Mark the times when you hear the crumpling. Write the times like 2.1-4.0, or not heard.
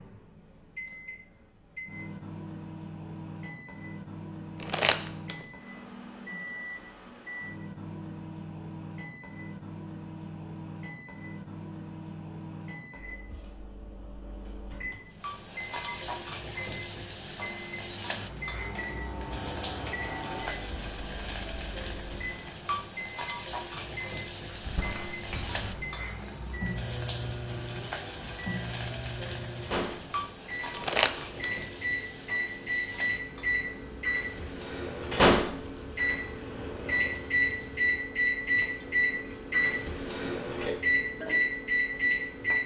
4.6-5.3, 24.4-25.7, 30.7-31.5.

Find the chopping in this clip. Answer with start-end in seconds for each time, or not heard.
not heard.